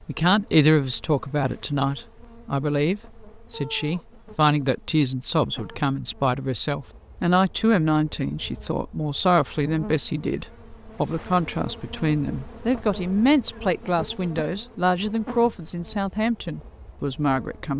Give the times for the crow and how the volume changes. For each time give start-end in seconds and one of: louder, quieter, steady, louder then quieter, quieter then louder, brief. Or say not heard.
not heard.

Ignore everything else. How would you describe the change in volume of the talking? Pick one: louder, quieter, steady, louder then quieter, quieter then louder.
steady.